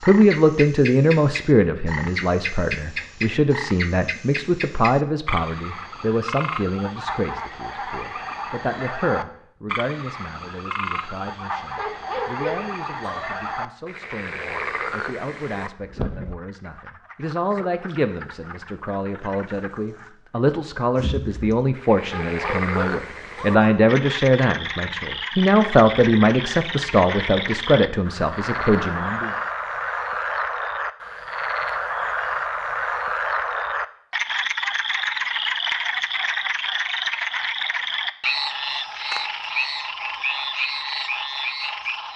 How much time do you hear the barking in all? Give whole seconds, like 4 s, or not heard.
3 s.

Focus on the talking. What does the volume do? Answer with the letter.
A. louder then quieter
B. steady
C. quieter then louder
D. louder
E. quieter
C.